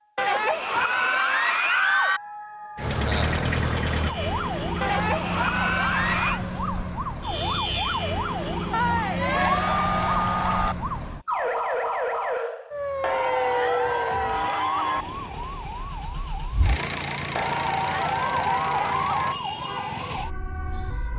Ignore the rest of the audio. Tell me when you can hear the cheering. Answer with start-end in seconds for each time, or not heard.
0.1-2.2, 4.8-6.4, 8.7-10.8, 13.0-15.1, 17.4-19.4.